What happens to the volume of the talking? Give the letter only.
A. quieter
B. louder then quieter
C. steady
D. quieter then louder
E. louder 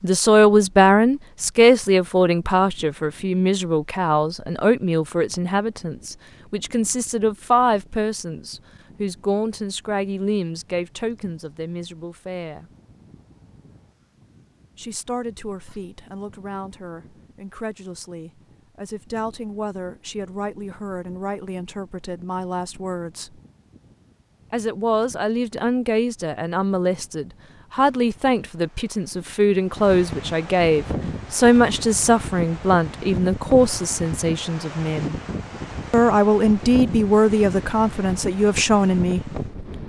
D.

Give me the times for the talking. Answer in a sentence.
You can hear the talking from 0.0 to 12.7 s, from 14.8 to 23.4 s, from 24.5 to 35.1 s and from 35.9 to 39.4 s.